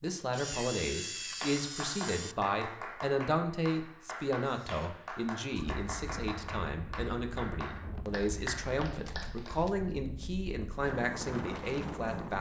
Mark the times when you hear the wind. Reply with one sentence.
The wind can be heard from 5.8 to 12.3 s.